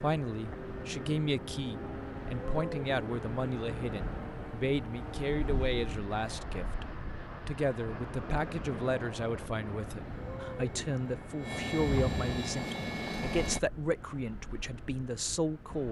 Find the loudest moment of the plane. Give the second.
12 s.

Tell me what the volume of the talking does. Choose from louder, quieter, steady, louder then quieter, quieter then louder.
steady.